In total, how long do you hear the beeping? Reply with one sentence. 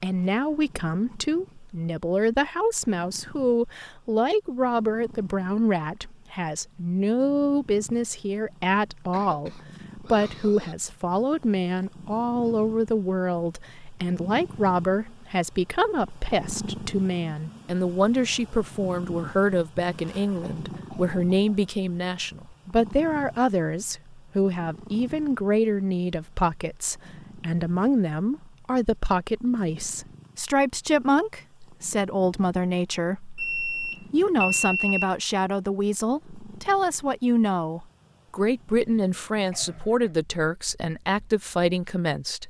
The beeping can be heard for 2 seconds in total.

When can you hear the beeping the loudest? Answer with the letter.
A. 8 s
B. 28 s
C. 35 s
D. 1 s
C.